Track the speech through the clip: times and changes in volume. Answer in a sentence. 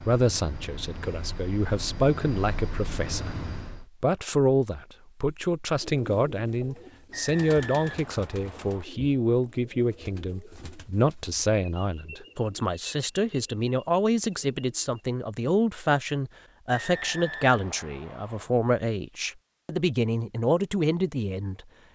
The speech can be heard from 0.0 to 21.6 s, at a steady volume.